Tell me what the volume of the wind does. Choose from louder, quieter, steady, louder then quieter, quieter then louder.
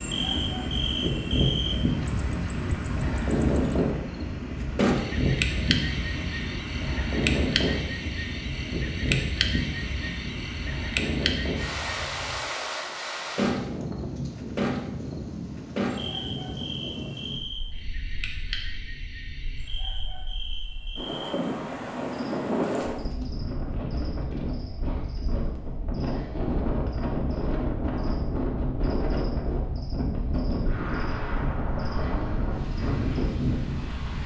quieter then louder.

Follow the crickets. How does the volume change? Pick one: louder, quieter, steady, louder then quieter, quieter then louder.
quieter.